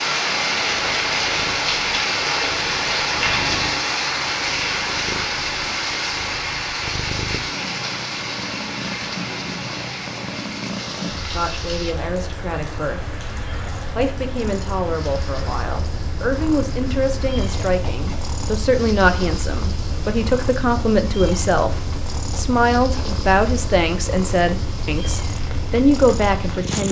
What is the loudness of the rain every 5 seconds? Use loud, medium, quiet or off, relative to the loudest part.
loud, medium, quiet, quiet, quiet, quiet.